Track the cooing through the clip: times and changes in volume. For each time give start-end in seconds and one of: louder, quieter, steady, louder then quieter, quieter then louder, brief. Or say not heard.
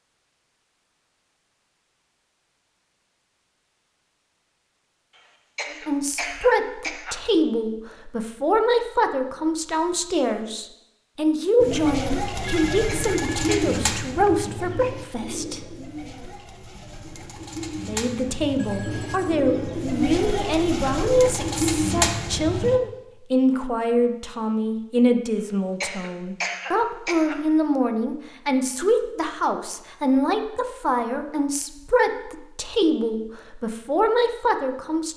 11.6-22.8 quieter then louder.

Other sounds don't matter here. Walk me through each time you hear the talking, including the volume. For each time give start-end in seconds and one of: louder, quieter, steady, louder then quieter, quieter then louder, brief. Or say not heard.
5.7-15.6 steady
17.8-35.1 steady.